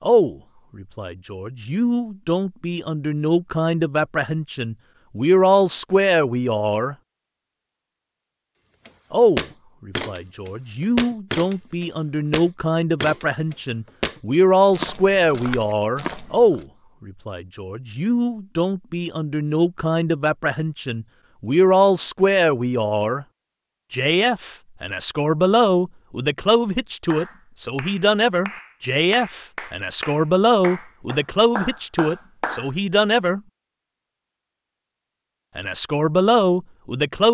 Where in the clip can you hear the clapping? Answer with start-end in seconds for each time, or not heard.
27.1-32.7.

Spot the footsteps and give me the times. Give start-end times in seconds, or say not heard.
8.8-16.6.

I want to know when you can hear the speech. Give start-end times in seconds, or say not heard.
0.0-7.0, 9.1-23.2, 23.9-33.4, 35.5-37.2.